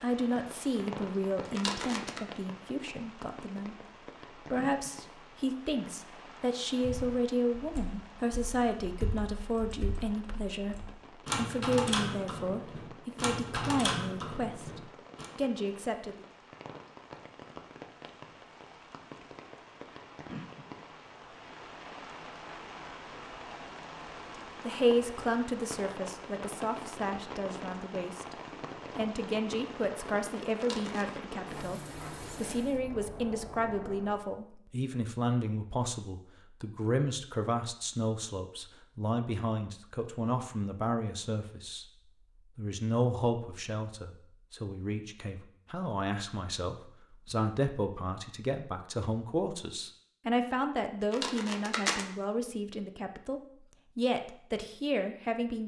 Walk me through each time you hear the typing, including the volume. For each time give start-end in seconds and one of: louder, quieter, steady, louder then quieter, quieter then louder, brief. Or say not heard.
6.8-15.2 louder.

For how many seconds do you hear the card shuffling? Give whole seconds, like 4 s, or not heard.
2 s.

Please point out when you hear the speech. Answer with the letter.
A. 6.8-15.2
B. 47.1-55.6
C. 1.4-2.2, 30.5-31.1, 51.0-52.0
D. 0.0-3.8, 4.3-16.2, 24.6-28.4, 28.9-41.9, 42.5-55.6
D.